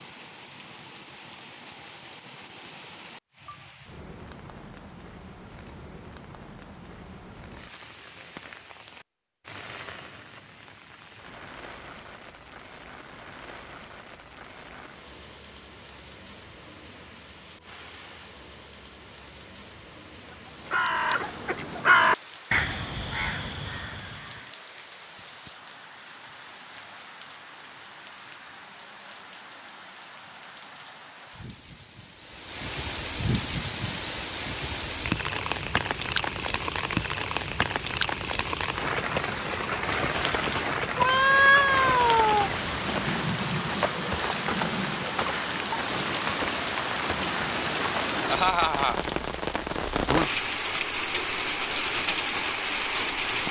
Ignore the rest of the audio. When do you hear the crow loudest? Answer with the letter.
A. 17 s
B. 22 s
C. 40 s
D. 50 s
B.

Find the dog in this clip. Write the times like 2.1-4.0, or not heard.
not heard.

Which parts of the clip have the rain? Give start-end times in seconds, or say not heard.
0.0-53.4.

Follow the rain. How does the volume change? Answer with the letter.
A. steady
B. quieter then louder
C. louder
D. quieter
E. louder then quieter
C.